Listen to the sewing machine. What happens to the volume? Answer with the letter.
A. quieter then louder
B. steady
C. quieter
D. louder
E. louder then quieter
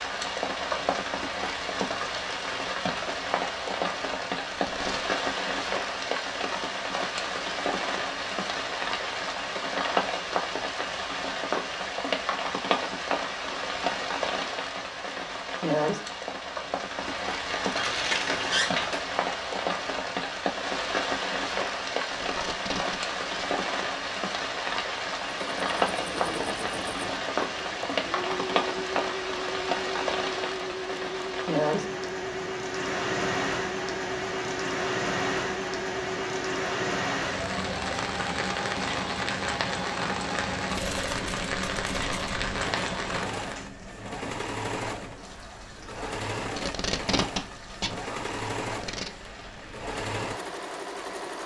B.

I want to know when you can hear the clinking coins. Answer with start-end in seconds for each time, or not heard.
17.4-19.0.